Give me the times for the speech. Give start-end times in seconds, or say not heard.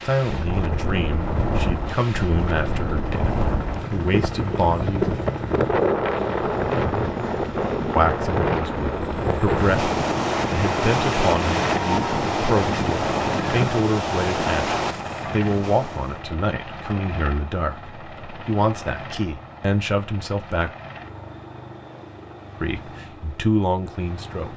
0.0-5.2, 7.9-20.7, 22.6-24.5.